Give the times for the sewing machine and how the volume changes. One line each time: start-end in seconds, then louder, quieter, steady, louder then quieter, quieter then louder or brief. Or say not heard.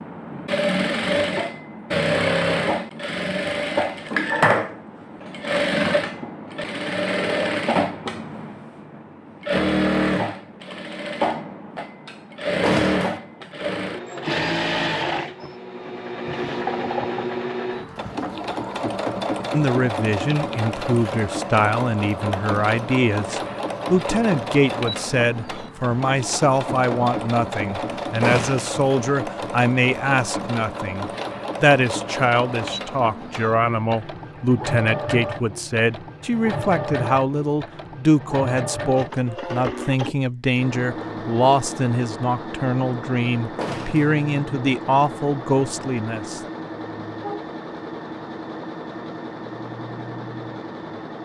0.0-51.2 quieter.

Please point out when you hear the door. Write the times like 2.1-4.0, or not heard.
12.6-13.2, 28.2-28.7, 43.5-44.1.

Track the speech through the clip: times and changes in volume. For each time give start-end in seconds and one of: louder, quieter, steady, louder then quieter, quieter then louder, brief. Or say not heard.
19.5-46.4 steady.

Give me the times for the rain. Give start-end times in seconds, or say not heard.
not heard.